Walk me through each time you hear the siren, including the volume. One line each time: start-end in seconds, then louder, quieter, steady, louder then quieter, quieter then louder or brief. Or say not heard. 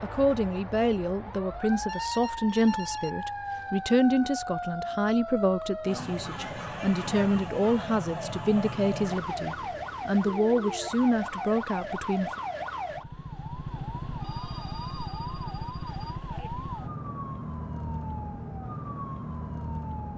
0.0-20.1 steady.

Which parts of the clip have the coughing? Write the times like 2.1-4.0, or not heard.
not heard.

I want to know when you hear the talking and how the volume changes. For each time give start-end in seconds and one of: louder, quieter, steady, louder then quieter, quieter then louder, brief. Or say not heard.
0.0-12.3 steady.